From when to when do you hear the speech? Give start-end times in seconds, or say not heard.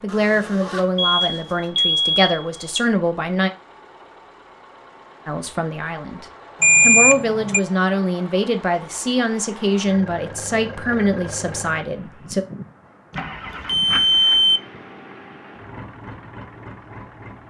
0.0-3.5, 5.2-12.4.